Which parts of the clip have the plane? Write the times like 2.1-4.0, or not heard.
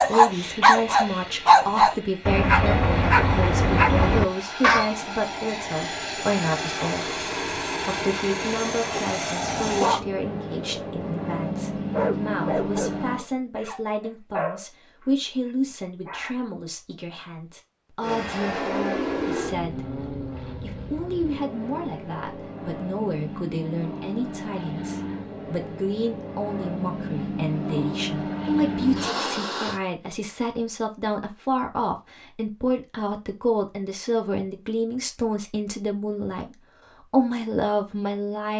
0.0-13.2, 18.0-29.8.